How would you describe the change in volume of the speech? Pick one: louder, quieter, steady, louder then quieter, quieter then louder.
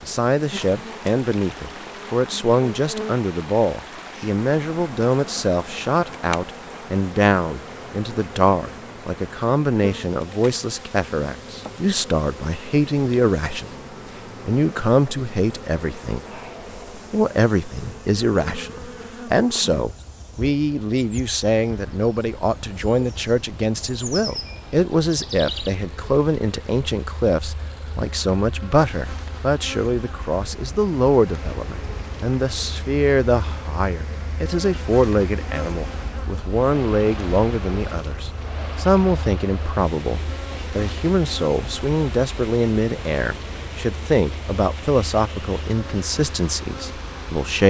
steady.